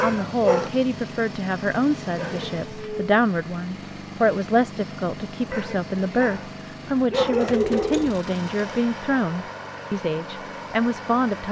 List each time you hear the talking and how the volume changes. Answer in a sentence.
The talking can be heard from 0.0 to 11.4 s, at a steady volume.